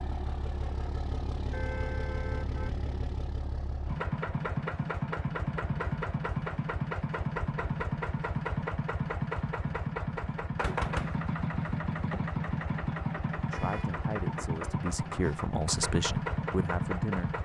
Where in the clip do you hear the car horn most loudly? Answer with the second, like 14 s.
2 s.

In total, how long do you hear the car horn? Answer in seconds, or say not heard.
2 s.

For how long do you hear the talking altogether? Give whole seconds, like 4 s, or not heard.
4 s.